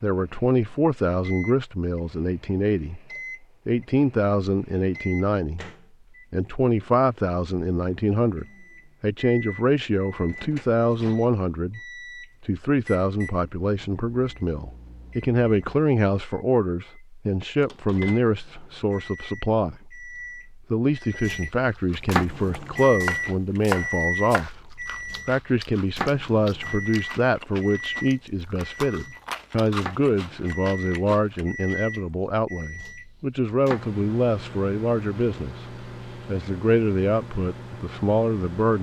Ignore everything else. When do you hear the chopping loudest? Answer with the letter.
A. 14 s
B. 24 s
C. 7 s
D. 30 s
B.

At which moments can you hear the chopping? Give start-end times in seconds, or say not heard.
22.1-24.4.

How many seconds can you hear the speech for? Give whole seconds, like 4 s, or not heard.
36 s.